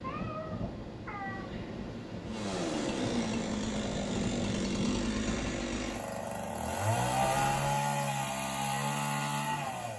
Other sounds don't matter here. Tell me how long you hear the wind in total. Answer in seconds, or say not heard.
6 s.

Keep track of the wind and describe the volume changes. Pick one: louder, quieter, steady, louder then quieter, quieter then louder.
steady.